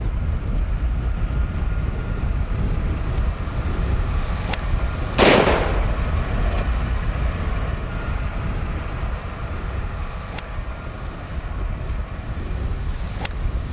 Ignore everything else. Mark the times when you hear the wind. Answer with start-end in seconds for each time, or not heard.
0.0-13.6.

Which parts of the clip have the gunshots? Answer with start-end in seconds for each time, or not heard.
5.2-6.7.